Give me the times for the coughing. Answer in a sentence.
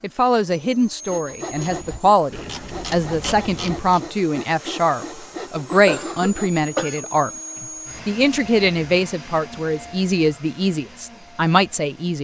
The coughing can be heard from 5.8 to 7.1 s.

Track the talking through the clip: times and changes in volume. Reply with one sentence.
The talking can be heard from 0.0 to 12.2 s, at a steady volume.